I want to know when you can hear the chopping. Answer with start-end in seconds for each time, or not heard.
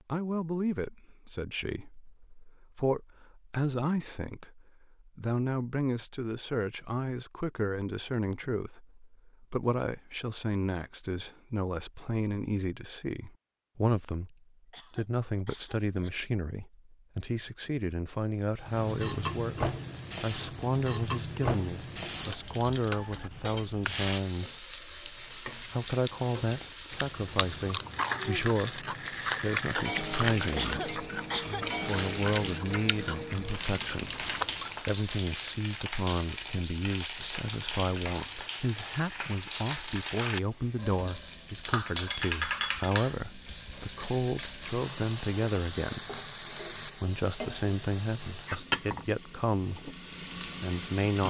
not heard.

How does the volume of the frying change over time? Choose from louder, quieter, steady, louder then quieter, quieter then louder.
steady.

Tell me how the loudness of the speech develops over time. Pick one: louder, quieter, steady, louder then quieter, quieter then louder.
steady.